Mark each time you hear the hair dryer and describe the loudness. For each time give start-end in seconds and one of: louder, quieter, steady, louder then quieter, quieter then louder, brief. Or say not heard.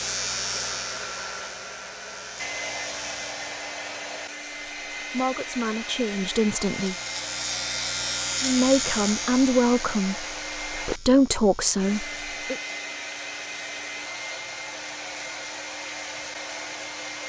0.0-17.2 steady.